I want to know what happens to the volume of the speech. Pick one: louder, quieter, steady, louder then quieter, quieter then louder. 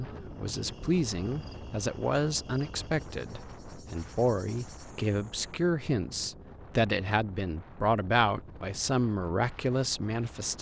steady.